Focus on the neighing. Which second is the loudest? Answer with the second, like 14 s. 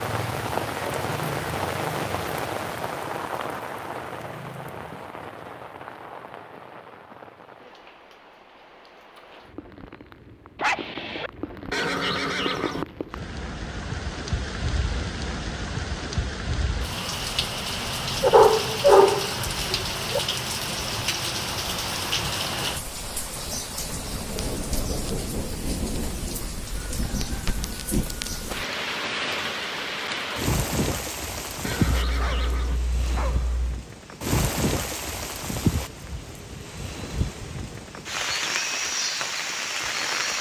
12 s.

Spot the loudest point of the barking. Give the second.
19 s.